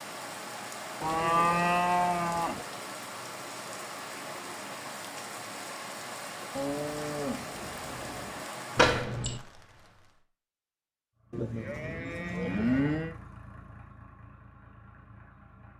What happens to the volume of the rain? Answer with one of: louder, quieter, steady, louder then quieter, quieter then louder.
steady.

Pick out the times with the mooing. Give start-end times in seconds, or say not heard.
1.0-2.6, 6.5-8.4, 11.3-13.2.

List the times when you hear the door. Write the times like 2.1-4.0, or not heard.
8.8-9.4.